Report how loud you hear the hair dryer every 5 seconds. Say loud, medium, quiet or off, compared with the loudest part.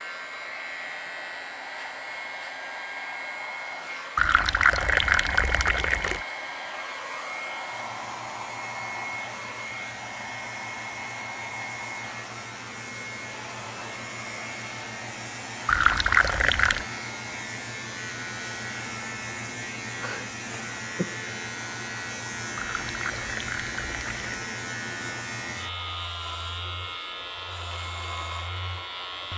loud, loud, loud, medium, medium, medium.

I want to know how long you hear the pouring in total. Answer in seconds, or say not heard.
5 s.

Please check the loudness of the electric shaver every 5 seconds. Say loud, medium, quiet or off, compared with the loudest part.
medium, medium, medium, loud, loud, loud.